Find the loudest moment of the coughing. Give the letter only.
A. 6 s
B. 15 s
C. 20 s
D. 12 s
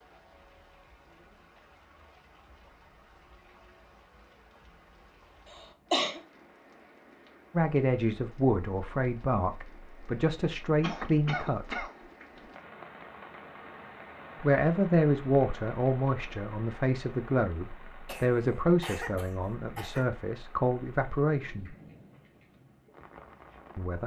A.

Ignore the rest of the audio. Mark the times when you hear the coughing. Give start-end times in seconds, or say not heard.
5.5-6.2, 10.8-11.9, 18.1-20.1.